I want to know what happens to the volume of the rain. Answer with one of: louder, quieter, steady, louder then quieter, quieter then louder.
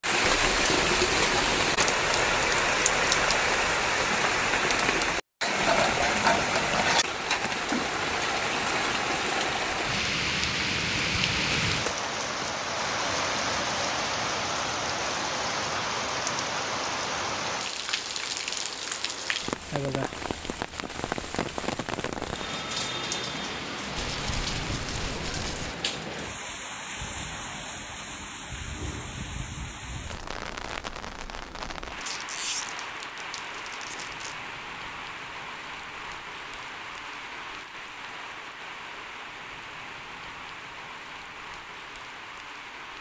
quieter.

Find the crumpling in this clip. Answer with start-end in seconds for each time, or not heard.
11.7-12.6, 23.9-25.8, 31.9-34.4.